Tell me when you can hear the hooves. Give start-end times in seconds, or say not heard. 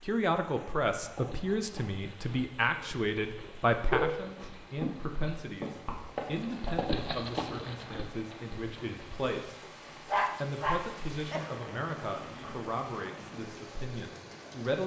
0.5-9.2.